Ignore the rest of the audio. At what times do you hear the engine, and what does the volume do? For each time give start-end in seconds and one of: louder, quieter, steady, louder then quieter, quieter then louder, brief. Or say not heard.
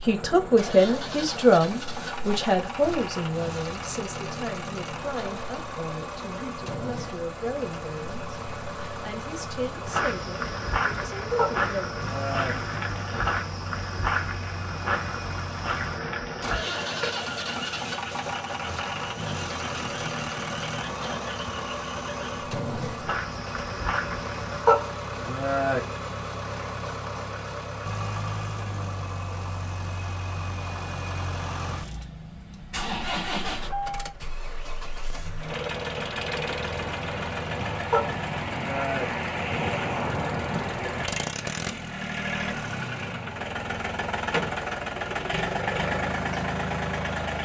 0.0-47.4 louder.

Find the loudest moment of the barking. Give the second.
25 s.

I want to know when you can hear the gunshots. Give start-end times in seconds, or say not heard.
not heard.